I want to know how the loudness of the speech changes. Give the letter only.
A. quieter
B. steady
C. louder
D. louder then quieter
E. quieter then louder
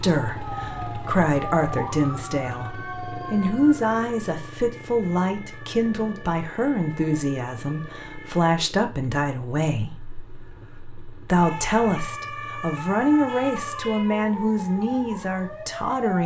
B.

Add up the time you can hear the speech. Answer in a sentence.
You can hear the speech for 16 seconds altogether.